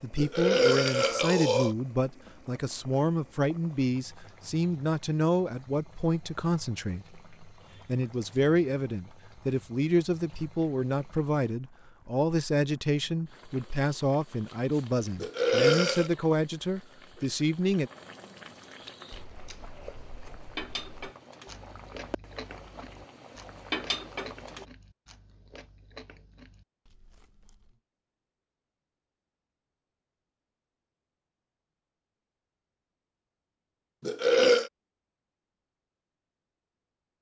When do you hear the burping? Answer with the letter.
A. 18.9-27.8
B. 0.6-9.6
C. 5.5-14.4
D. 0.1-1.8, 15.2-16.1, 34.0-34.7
D.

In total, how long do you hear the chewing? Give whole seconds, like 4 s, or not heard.
9 s.